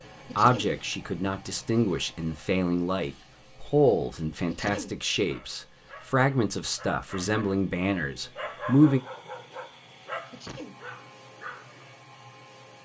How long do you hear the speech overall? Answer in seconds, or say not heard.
9 s.